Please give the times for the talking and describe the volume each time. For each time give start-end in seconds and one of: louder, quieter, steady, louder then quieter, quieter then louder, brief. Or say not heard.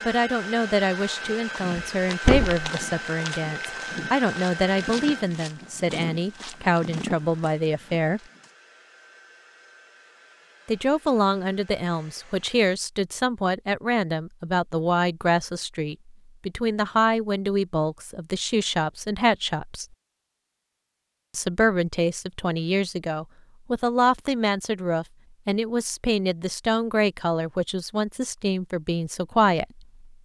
0.1-8.2 steady
10.7-19.9 steady
21.3-30.2 steady.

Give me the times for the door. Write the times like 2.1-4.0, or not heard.
1.8-2.7.